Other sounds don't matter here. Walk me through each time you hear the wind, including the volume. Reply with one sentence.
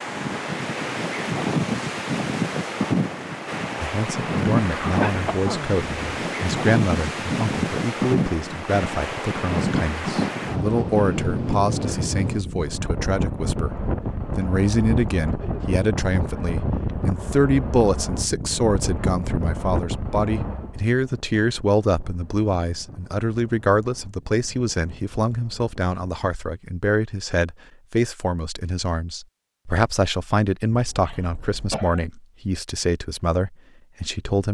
The wind can be heard from 0.0 to 26.3 s, getting quieter.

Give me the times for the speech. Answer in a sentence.
You can hear the speech from 3.8 to 34.4 s.